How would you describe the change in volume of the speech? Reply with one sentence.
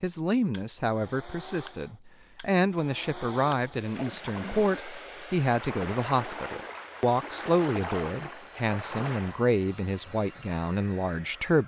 The loudness of the speech stays about the same.